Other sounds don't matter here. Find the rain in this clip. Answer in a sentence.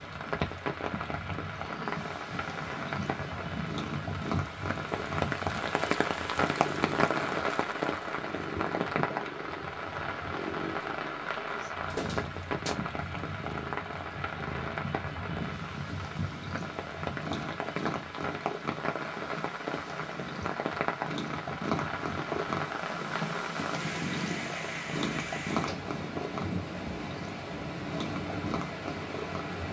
You can hear the rain from 0.0 to 29.6 s.